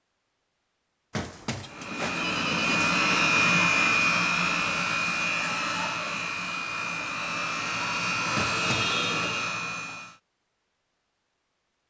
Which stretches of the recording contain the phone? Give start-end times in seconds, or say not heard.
1.1-3.0, 8.3-9.3.